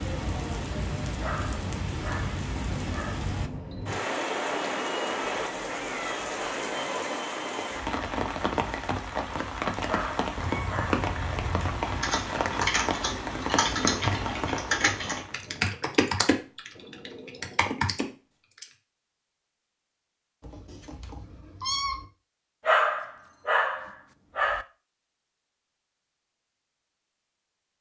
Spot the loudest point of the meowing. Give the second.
22 s.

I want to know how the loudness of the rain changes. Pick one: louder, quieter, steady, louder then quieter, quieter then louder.
steady.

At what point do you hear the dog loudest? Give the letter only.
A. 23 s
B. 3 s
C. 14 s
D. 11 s
A.